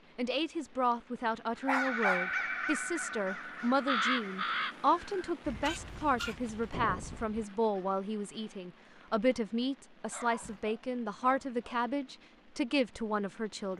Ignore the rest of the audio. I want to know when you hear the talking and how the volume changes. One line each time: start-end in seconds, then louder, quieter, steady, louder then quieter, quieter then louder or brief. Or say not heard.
0.1-13.7 steady.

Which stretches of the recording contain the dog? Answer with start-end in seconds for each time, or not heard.
1.6-2.5, 5.6-7.2, 10.1-11.9.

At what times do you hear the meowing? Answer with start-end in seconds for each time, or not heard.
not heard.